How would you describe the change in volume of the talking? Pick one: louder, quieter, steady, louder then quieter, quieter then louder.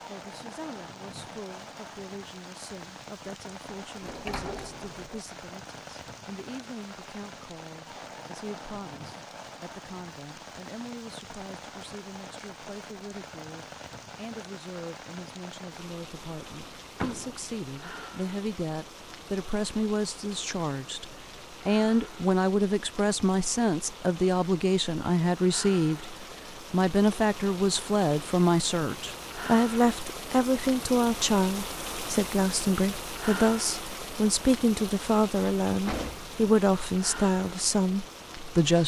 louder.